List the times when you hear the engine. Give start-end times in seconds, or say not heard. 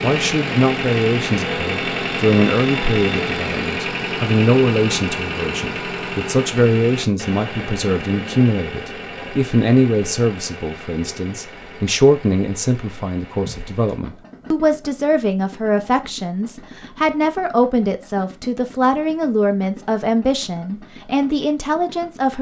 0.0-22.3.